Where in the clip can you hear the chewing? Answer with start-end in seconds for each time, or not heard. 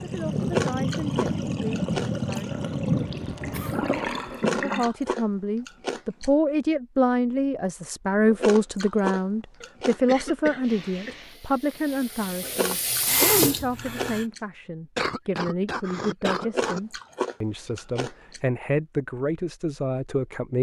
0.4-2.4, 4.3-6.3, 8.2-10.2, 12.4-14.4, 16.4-18.4.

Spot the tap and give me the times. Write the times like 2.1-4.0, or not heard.
0.0-4.9, 10.6-14.2.